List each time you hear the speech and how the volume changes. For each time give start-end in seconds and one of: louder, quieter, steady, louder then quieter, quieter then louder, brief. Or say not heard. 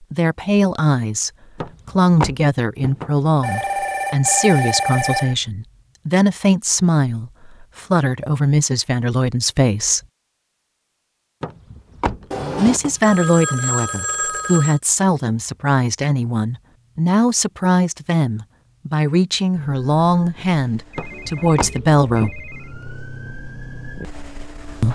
0.1-10.0 steady
12.6-22.3 steady.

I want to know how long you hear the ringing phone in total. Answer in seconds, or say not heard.
6 s.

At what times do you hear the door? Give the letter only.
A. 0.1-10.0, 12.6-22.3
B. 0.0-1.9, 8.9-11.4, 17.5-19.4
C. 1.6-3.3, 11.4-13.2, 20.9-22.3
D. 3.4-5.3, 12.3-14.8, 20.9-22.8
C.